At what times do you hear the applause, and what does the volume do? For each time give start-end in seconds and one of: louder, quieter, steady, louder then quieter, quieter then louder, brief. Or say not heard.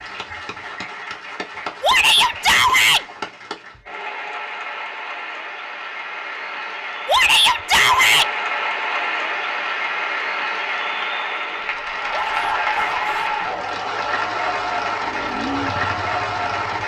0.0-16.8 louder.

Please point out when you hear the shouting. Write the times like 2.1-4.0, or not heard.
1.8-3.0, 7.0-8.3, 12.1-13.3.